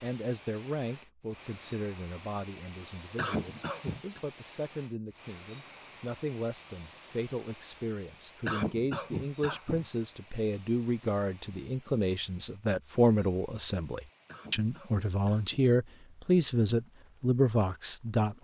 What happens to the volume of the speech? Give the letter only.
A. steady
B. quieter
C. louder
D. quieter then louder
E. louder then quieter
C.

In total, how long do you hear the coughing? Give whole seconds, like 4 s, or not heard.
4 s.